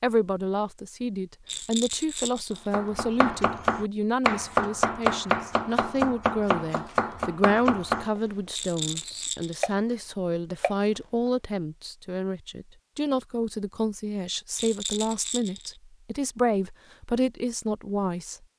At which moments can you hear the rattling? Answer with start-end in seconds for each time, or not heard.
1.4-2.6, 8.5-9.8, 14.6-15.8.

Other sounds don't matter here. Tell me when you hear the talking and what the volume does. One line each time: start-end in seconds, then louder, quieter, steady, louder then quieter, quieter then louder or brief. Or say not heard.
0.0-18.4 steady.